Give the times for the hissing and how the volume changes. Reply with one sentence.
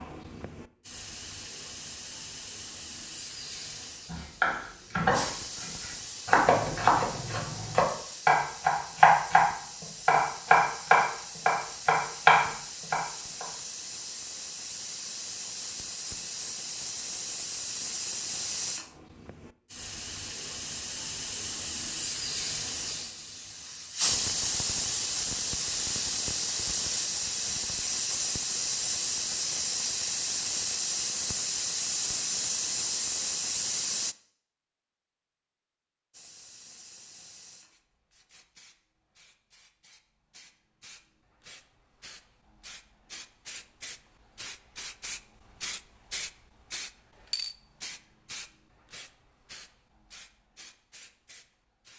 The hissing can be heard from 0.0 to 34.1 s, getting louder; and from 36.1 to 51.9 s, getting louder then quieter.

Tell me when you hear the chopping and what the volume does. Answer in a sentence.
You can hear the chopping from 4.1 to 13.4 s, getting louder.